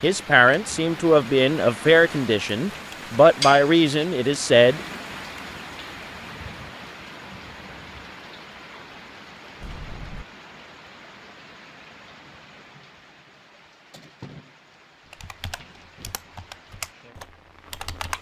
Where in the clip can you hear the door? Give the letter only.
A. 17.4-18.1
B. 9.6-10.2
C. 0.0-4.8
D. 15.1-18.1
B.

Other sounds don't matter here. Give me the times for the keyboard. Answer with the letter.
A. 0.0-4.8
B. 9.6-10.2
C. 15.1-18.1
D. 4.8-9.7
C.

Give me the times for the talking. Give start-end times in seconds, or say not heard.
0.0-4.8.